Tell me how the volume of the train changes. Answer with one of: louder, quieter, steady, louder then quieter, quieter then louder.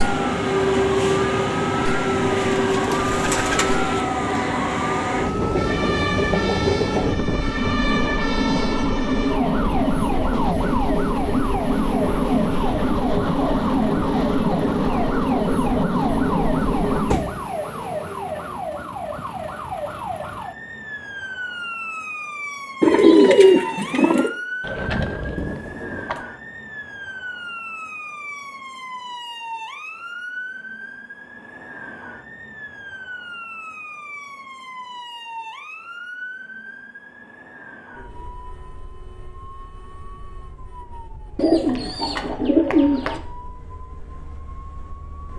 steady.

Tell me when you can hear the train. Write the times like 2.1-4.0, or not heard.
0.0-17.2.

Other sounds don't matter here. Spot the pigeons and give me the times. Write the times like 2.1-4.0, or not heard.
2.3-3.8, 22.8-24.3, 41.4-43.2.